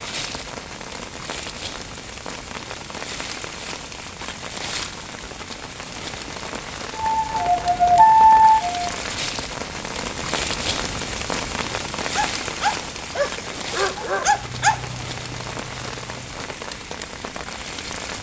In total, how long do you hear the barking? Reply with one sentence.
You can hear the barking for 3 seconds altogether.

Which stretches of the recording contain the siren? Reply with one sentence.
The siren can be heard from 7.0 to 8.8 s.